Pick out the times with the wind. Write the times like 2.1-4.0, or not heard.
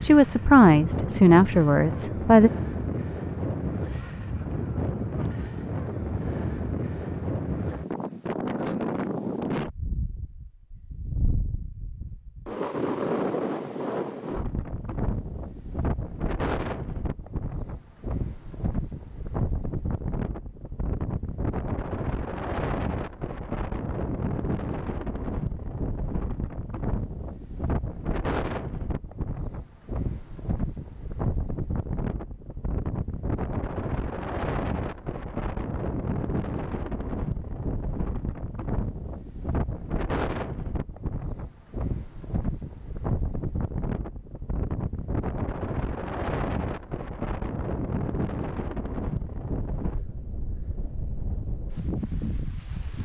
0.0-53.0.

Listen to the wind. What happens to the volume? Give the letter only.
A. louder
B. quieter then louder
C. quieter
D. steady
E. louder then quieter
D.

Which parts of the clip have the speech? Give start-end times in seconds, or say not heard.
0.0-2.5.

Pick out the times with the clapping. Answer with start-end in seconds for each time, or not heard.
not heard.